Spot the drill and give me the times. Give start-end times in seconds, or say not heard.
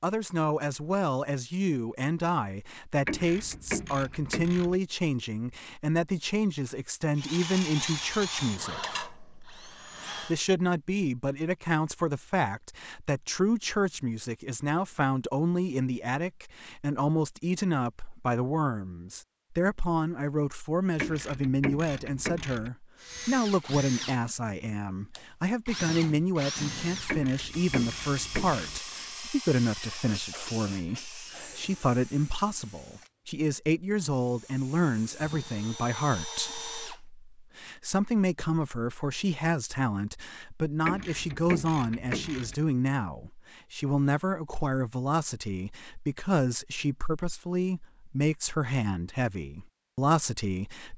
7.2-10.3, 22.9-37.0.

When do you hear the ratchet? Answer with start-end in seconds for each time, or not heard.
3.0-4.8, 20.9-22.7, 27.1-28.8, 40.8-42.5.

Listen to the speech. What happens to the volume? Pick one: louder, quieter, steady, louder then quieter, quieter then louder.
steady.